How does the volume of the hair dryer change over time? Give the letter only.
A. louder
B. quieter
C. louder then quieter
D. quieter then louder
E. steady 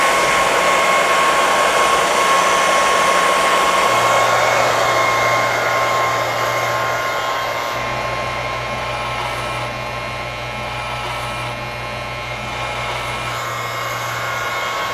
B.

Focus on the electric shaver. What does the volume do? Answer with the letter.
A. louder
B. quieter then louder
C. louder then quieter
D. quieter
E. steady
E.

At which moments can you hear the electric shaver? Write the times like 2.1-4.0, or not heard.
0.0-14.8.